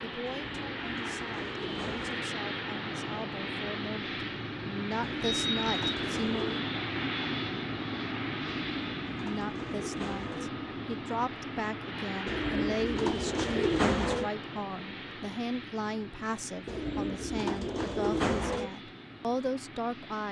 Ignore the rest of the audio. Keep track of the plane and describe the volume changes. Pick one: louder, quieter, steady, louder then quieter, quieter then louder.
quieter.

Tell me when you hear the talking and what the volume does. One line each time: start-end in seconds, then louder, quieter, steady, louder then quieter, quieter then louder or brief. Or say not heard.
0.0-6.6 louder
9.2-20.2 steady.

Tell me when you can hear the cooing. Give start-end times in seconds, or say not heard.
0.2-2.3, 5.0-6.6, 8.4-10.5, 12.2-14.3, 16.6-18.7.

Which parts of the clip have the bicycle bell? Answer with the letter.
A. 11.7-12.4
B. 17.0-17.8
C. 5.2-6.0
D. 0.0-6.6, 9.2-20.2
C.